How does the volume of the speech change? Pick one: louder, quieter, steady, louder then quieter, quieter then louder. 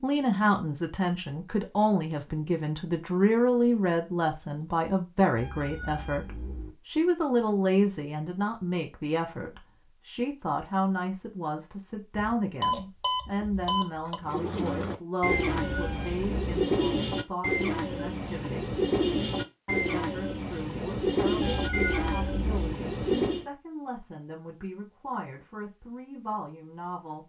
quieter.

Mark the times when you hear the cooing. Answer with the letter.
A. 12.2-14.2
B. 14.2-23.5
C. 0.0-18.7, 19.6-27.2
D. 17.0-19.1
B.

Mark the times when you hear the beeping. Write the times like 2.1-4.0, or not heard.
12.2-14.2.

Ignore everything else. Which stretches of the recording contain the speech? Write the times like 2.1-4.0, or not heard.
0.0-18.7, 19.6-27.2.